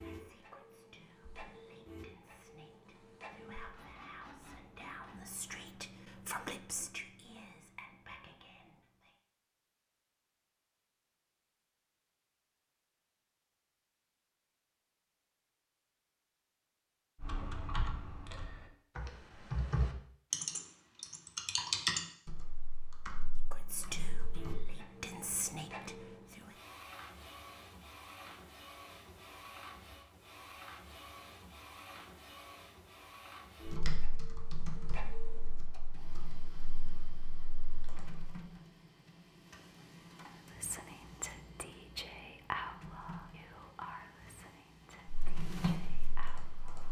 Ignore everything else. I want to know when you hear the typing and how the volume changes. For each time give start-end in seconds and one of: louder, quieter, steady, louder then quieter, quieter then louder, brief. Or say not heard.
17.2-24.7 louder then quieter
33.6-38.3 quieter
45.0-46.8 brief.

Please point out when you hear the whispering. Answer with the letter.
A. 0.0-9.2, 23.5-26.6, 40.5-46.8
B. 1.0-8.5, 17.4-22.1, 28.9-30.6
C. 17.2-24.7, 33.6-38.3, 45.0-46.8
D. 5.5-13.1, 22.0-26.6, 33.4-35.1
A.